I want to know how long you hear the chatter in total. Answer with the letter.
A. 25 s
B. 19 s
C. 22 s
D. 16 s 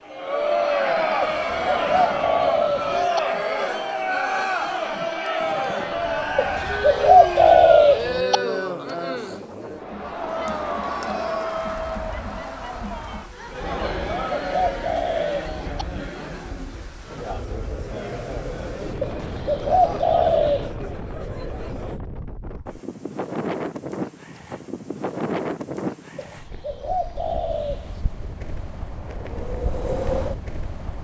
C.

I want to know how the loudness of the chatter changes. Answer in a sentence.
The volume of the chatter goes down.